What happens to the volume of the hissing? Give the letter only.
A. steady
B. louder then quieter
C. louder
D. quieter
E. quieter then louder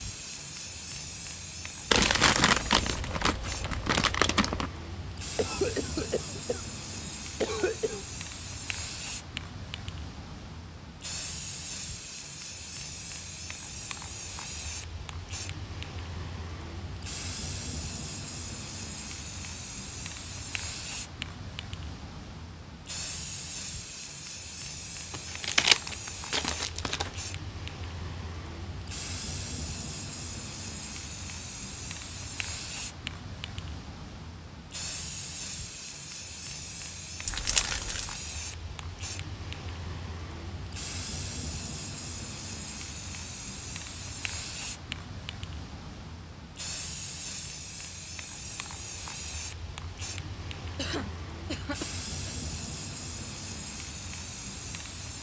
A.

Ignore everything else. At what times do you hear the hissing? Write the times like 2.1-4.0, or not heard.
0.0-55.1.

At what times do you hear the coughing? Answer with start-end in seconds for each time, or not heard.
5.3-8.1, 50.8-52.4.